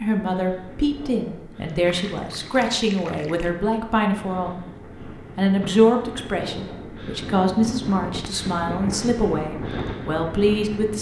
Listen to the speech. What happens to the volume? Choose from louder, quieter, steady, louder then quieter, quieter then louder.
steady.